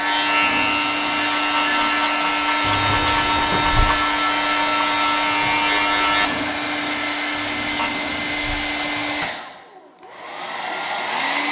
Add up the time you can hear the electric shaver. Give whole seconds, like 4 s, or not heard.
8 s.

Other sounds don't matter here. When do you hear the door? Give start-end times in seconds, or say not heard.
2.6-4.0, 7.3-9.3.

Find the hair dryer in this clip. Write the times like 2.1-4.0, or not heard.
0.0-11.4.